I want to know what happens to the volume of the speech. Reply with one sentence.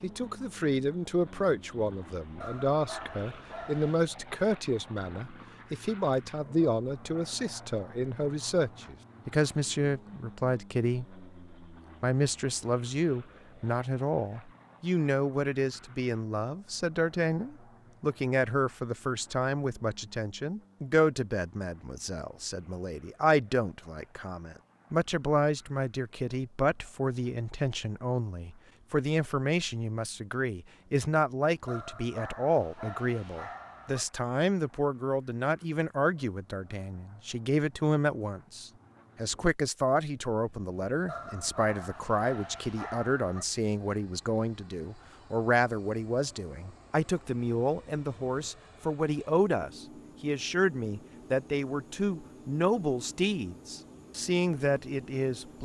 The volume of the speech stays about the same.